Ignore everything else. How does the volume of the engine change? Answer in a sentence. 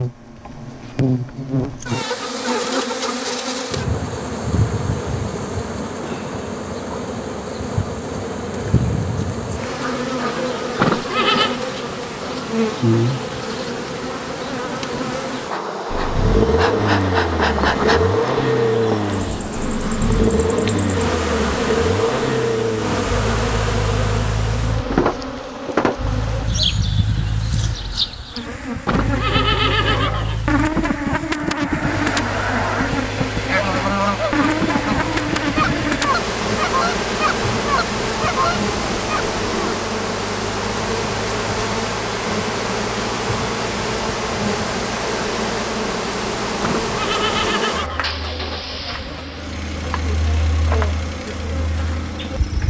The loudness of the engine goes down.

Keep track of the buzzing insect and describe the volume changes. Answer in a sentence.
The loudness of the buzzing insect stays about the same.